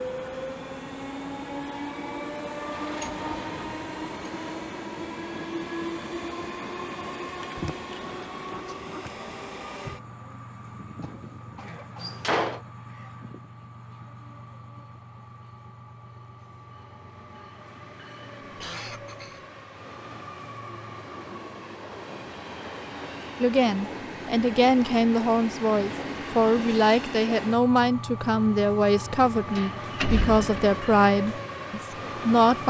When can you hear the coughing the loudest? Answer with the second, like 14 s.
19 s.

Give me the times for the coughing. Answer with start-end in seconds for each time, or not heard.
11.0-12.2, 18.4-19.4.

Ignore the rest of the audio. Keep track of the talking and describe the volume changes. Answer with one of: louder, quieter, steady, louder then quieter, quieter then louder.
steady.